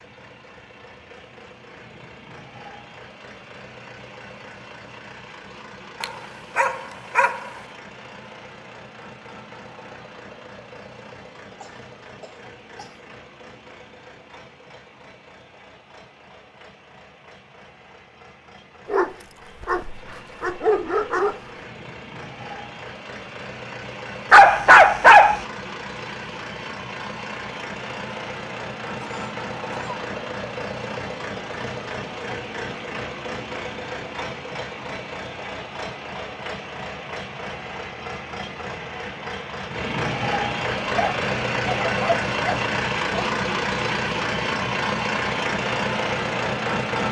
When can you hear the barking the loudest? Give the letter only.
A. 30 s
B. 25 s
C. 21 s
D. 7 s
B.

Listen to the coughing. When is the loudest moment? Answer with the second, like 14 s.
30 s.